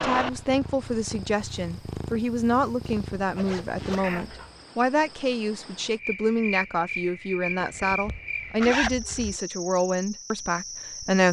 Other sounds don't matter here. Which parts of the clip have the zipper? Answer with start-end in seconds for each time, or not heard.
2.8-4.1, 7.6-9.4.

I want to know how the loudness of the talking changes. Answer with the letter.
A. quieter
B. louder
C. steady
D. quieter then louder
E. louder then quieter
C.